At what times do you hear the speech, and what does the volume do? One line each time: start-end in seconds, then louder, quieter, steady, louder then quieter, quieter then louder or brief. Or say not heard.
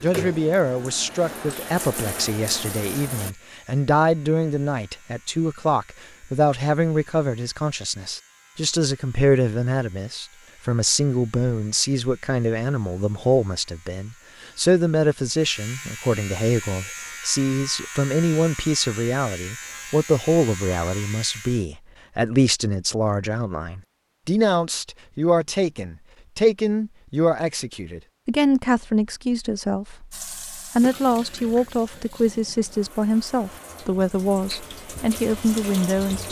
0.0-36.2 steady.